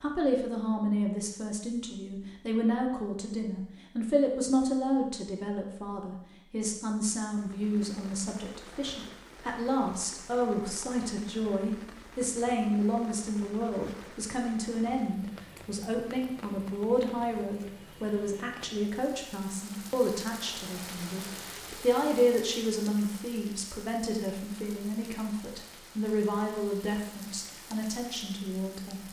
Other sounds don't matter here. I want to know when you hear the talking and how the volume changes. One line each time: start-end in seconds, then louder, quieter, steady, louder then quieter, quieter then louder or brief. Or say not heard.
0.0-29.0 steady.